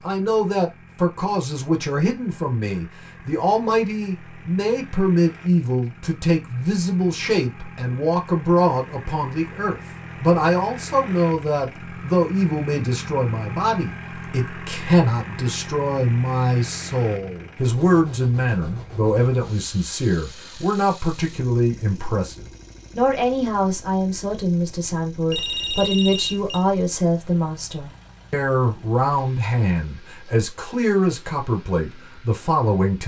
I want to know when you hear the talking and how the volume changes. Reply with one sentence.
The talking can be heard from 0.0 to 33.0 s, at a steady volume.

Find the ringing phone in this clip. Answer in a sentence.
The ringing phone can be heard from 25.3 to 26.6 s.